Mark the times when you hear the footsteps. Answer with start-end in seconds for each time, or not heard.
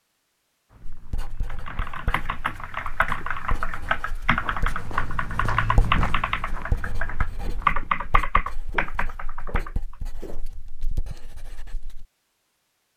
0.7-10.4.